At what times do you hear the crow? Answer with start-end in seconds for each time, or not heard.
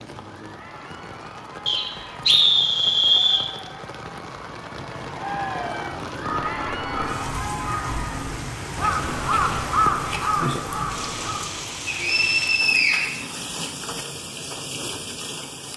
6.2-11.4.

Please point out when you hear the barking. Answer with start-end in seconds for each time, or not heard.
not heard.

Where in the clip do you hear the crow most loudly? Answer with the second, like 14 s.
10 s.